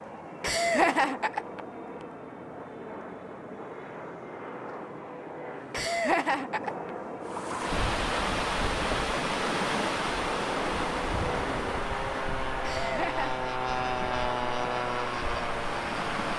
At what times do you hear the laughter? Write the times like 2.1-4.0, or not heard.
0.4-1.6, 5.7-6.9, 12.6-13.3.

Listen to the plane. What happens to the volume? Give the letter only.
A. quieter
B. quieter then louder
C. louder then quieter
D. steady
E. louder
E.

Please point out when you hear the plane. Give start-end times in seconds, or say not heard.
0.0-16.3.